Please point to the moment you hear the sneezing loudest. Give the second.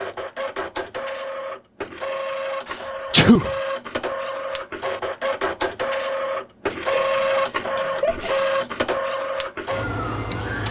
3 s.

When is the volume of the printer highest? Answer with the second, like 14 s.
7 s.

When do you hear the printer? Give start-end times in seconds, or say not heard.
0.0-10.6.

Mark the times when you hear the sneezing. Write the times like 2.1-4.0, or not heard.
2.6-3.5, 6.7-8.4.